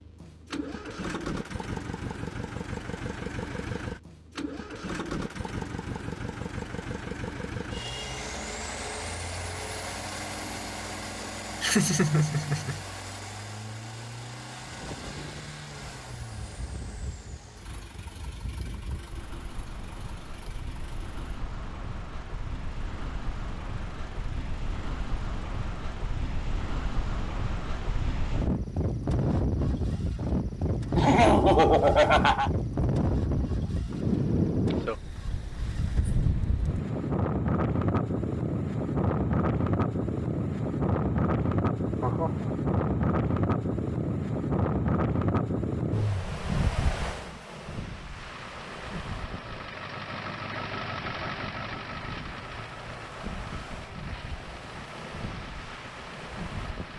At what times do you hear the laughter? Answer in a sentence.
The laughter can be heard from 11.6 to 12.8 s, from 30.9 to 32.5 s and from 42.0 to 42.5 s.